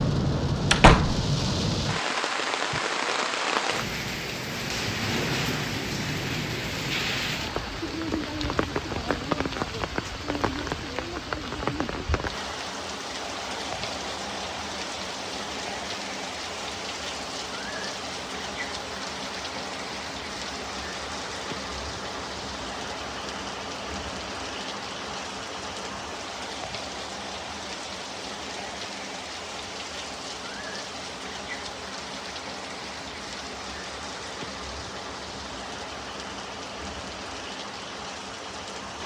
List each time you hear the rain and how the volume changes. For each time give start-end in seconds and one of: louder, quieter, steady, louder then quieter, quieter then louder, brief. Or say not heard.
0.0-39.0 quieter.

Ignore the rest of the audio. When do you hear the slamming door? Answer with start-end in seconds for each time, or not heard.
0.7-1.2.